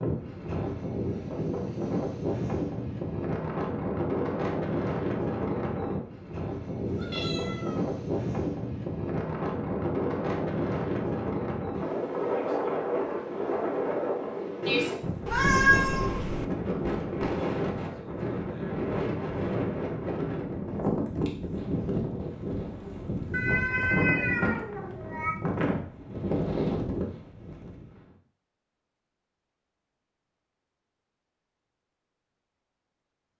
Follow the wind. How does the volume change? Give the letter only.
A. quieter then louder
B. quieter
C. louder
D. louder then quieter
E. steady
E.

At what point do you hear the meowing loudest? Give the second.
16 s.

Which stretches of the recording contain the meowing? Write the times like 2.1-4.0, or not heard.
6.8-7.8, 15.2-16.4, 23.3-25.4.